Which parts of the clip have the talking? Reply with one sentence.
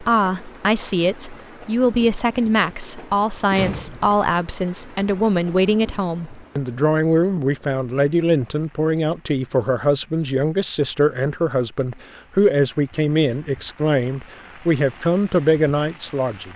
The talking can be heard from 0.0 to 16.5 s.